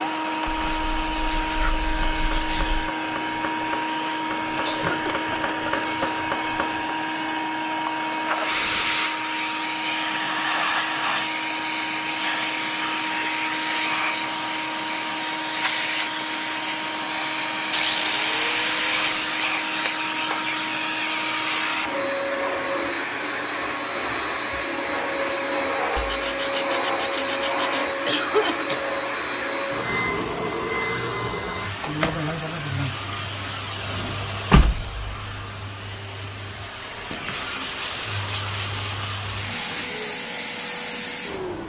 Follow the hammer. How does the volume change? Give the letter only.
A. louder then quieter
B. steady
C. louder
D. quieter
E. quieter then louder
C.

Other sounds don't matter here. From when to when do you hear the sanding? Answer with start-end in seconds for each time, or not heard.
0.5-2.9, 12.1-14.1, 17.7-19.9, 25.9-27.9, 37.3-39.9.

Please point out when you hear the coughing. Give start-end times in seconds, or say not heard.
4.6-5.8, 28.1-28.9.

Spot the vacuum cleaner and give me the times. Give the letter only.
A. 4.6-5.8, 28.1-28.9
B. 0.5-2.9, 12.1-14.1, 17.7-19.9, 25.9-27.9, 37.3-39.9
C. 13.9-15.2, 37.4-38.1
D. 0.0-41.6
D.